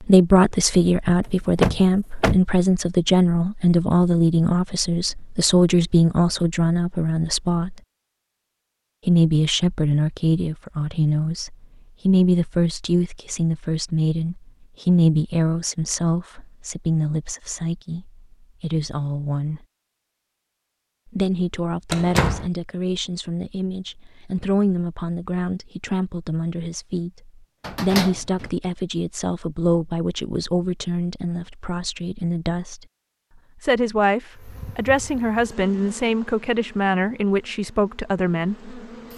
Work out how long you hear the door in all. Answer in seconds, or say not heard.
3 s.